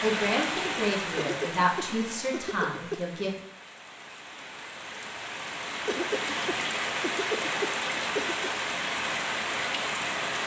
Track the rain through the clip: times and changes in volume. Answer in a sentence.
You can hear the rain from 0.0 to 10.4 s, getting quieter then louder.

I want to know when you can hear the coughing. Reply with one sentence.
You can hear the coughing from 1.1 to 3.0 s and from 5.8 to 8.5 s.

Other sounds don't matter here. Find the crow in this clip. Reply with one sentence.
You can't hear the crow here.